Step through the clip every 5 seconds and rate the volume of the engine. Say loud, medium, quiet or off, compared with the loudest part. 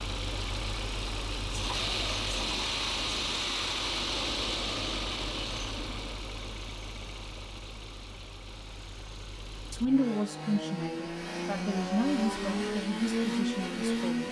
loud, medium, loud.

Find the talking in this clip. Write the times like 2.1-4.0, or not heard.
9.7-14.2.